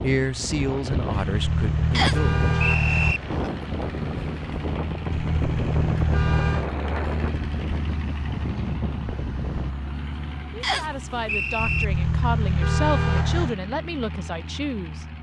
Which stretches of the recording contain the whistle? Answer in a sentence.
The whistle can be heard from 1.9 to 3.2 s and from 10.6 to 11.8 s.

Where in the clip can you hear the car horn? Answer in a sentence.
The car horn can be heard from 1.1 to 3.1 s, from 5.1 to 6.7 s and from 11.6 to 13.6 s.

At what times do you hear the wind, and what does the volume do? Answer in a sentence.
You can hear the wind from 0.0 to 9.8 s, at a steady volume.